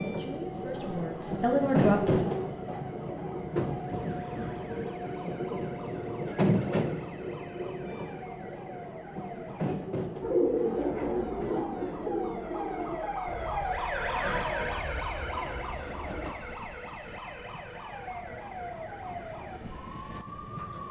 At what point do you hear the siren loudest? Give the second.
14 s.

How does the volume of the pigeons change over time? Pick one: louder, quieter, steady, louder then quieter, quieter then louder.
quieter.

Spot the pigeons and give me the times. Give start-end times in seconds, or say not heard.
10.2-16.4.